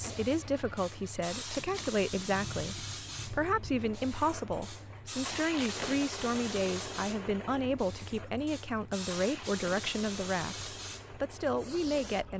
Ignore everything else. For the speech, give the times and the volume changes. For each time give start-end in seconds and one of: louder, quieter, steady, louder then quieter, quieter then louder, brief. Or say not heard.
0.0-12.3 steady.